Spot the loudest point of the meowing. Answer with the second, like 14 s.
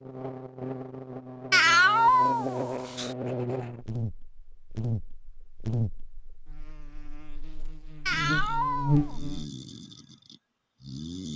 2 s.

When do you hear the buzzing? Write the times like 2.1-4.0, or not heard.
0.0-9.4.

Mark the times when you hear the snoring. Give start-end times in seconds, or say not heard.
8.1-11.3.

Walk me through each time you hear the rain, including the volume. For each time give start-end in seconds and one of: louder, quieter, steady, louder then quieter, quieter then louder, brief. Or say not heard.
not heard.